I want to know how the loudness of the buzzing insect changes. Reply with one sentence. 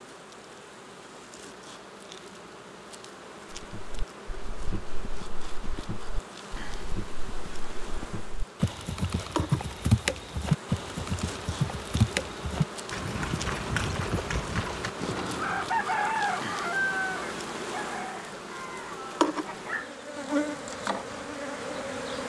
The loudness of the buzzing insect goes up.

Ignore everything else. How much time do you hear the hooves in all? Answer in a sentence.
You can hear the hooves for 12 seconds altogether.